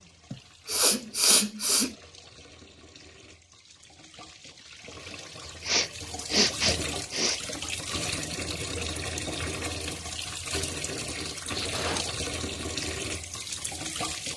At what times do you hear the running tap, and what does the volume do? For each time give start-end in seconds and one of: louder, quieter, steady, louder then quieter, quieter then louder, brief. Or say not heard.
0.0-14.3 louder.